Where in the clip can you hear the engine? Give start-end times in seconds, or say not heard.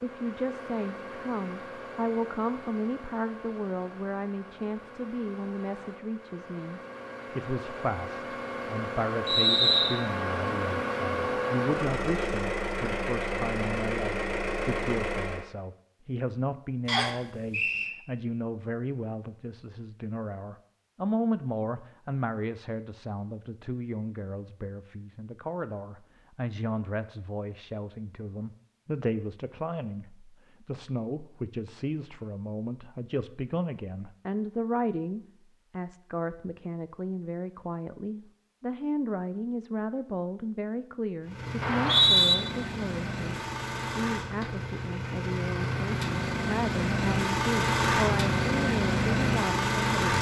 0.0-15.4, 41.2-50.1.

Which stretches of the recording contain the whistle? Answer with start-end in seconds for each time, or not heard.
9.2-9.9, 16.9-17.9, 41.6-42.4.